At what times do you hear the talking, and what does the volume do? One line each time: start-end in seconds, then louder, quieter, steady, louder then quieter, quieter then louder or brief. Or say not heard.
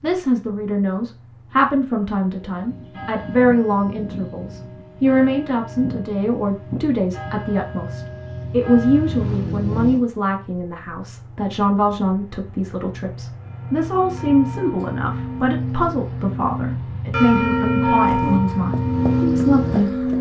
0.0-20.1 steady.